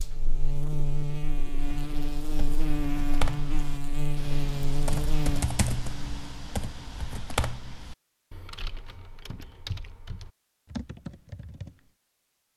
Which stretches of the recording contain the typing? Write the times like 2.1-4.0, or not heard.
1.6-11.9.